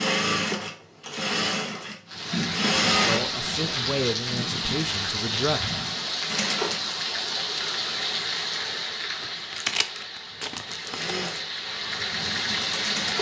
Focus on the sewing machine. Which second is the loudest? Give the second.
3 s.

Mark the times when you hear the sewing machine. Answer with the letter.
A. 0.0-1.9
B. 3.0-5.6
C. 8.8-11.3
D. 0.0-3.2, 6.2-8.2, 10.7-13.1
D.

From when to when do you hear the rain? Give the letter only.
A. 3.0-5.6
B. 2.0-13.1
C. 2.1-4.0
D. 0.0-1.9
B.